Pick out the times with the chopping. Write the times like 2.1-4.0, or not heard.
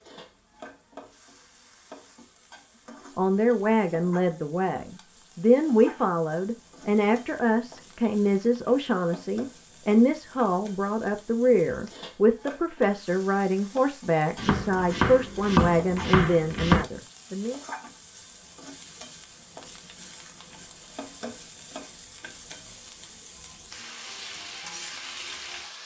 14.3-16.9.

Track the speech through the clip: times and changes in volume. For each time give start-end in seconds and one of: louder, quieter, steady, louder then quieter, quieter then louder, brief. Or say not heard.
3.1-17.6 steady.